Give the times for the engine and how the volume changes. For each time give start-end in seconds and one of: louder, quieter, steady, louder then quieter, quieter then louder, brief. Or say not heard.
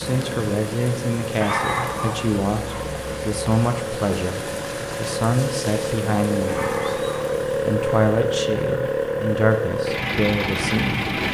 0.0-11.2 louder.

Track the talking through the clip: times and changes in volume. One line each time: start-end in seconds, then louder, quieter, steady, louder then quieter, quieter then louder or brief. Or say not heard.
0.0-11.1 steady.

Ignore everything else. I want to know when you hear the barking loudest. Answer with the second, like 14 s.
2 s.